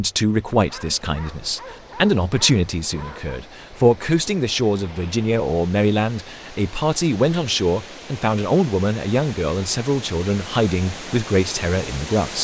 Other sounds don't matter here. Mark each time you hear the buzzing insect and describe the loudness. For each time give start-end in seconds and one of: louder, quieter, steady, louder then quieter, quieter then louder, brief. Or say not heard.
not heard.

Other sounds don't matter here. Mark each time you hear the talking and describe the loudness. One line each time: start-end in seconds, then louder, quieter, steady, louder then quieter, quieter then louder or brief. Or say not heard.
0.0-12.3 steady.